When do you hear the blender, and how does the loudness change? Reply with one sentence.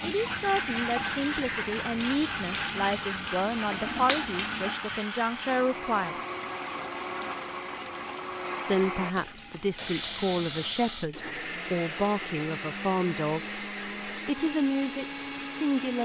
The blender can be heard from 0.2 to 15.9 s, at a steady volume.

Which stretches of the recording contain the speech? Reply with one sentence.
You can hear the speech from 0.0 to 6.2 s and from 8.7 to 15.9 s.